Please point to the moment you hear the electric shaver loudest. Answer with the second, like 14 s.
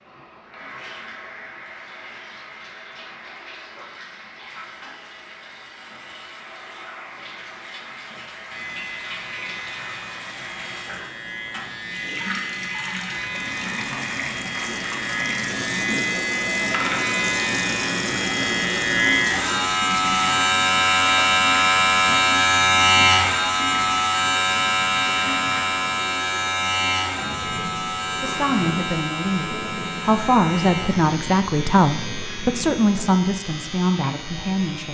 23 s.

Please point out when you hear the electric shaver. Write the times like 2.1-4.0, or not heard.
8.5-34.9.